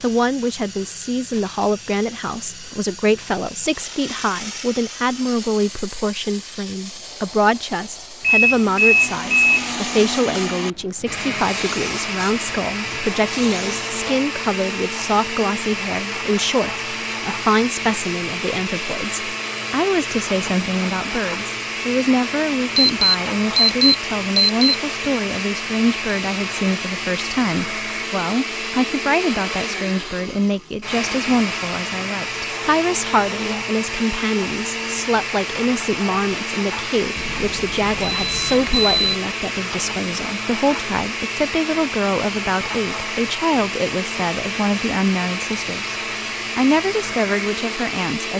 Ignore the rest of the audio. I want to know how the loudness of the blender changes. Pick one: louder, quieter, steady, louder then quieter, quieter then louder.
steady.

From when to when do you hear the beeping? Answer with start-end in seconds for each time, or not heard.
8.2-9.7, 22.8-24.8, 37.1-39.1.